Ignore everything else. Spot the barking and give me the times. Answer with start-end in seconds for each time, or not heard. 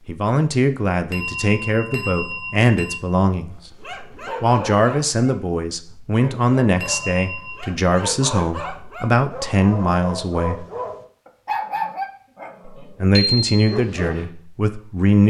3.5-14.3.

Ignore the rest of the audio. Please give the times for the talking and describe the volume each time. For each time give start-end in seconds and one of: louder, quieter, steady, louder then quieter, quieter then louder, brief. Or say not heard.
0.1-10.7 steady
12.8-15.2 brief.